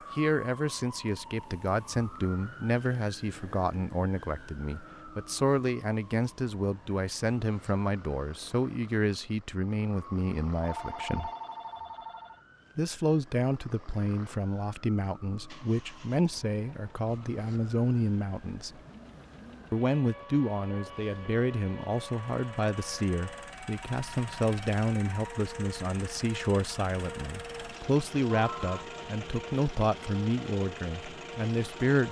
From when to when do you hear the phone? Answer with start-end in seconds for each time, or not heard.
10.6-12.4, 28.4-28.9.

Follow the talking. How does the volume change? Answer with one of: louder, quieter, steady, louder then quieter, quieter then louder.
steady.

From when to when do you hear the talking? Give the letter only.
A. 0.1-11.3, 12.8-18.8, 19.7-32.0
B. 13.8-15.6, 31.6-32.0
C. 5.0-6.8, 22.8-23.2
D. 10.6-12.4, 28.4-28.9
A.